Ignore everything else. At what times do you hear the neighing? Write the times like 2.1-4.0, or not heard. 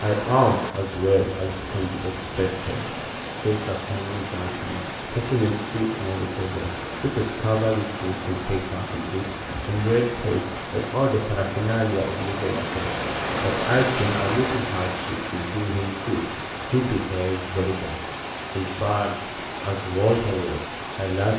not heard.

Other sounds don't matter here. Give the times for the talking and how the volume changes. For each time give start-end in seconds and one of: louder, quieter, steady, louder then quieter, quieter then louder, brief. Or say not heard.
0.0-21.3 steady.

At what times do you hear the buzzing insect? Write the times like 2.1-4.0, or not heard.
not heard.